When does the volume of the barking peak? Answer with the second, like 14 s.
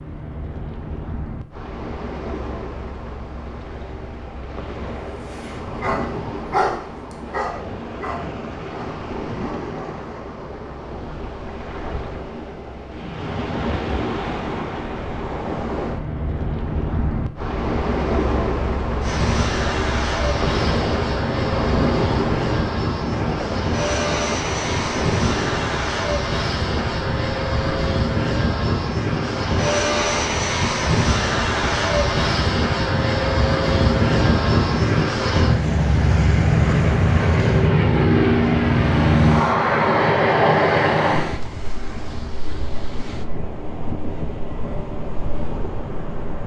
7 s.